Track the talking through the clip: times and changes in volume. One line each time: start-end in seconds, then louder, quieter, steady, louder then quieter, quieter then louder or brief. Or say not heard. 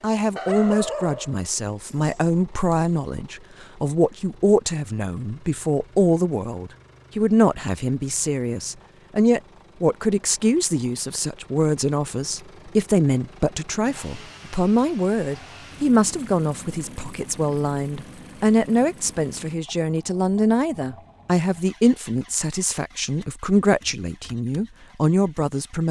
0.0-25.8 steady.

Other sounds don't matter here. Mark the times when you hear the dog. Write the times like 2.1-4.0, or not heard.
0.3-2.8.